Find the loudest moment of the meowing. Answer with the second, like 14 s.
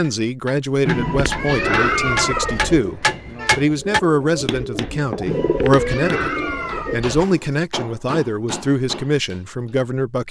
2 s.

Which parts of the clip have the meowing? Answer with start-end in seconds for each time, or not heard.
0.8-2.8, 5.2-7.2.